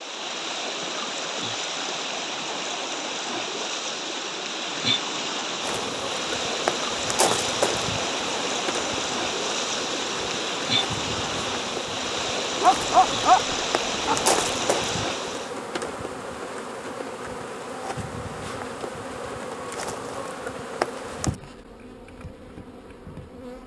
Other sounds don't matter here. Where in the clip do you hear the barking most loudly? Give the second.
13 s.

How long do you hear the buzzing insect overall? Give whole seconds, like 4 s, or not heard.
18 s.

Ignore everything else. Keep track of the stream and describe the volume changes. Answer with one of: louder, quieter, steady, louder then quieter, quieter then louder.
steady.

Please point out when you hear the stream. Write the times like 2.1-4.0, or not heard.
0.0-15.6.